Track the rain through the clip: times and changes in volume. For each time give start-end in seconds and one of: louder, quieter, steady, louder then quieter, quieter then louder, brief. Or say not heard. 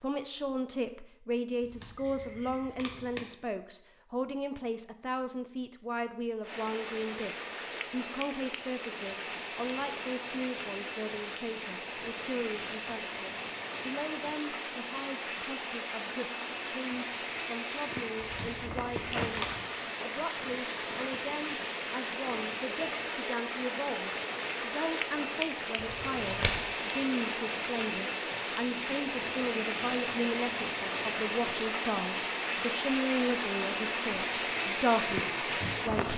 6.4-36.1 louder.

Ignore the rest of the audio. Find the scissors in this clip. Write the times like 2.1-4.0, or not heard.
1.6-3.2, 18.2-19.6, 25.8-26.6.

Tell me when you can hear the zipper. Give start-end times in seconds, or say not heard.
not heard.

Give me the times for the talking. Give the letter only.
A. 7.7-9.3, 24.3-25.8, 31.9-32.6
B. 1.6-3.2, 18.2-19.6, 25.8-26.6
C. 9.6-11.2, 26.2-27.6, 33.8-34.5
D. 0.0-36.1
D.